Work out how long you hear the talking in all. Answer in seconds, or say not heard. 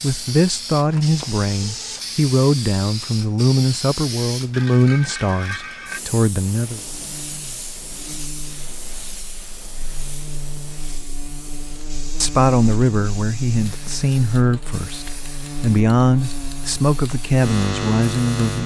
13 s.